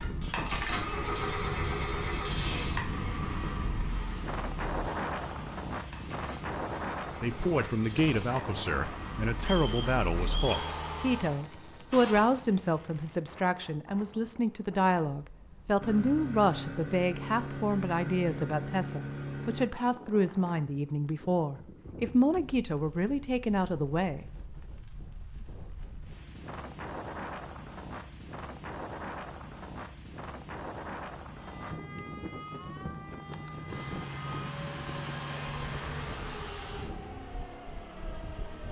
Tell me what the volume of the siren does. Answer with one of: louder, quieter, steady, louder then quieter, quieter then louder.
steady.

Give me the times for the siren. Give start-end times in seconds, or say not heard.
31.4-38.6.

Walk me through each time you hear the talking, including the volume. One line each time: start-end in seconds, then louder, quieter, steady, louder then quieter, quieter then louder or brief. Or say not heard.
7.2-24.2 steady.